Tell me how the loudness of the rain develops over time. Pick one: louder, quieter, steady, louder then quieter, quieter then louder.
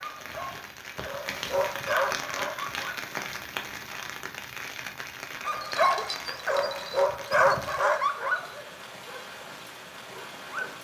quieter.